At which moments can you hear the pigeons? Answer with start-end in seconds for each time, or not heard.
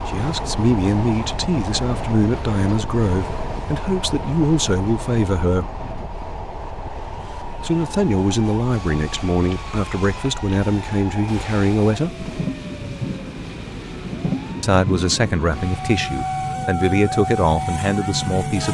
not heard.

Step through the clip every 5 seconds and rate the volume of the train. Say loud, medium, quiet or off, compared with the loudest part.
loud, medium, loud, loud.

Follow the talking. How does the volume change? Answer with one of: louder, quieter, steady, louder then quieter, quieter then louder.
steady.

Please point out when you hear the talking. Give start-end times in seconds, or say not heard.
0.0-5.7, 7.6-12.2, 14.6-18.6.